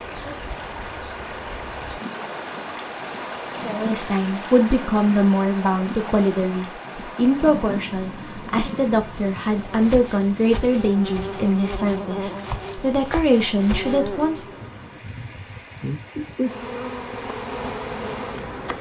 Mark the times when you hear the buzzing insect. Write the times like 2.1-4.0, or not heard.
0.0-18.7.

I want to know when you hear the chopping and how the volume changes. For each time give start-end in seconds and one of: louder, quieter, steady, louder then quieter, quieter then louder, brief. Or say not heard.
not heard.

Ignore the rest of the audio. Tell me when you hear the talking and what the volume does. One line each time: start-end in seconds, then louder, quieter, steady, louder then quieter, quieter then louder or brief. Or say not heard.
3.6-14.6 steady.